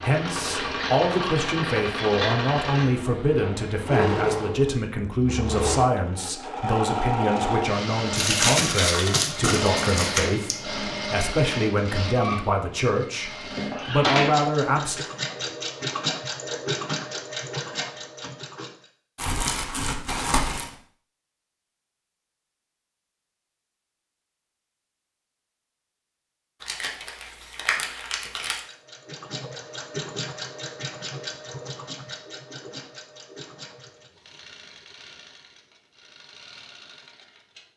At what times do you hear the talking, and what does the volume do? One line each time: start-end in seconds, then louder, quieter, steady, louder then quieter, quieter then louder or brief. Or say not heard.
0.0-15.1 steady.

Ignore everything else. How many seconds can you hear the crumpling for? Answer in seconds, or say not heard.
6 s.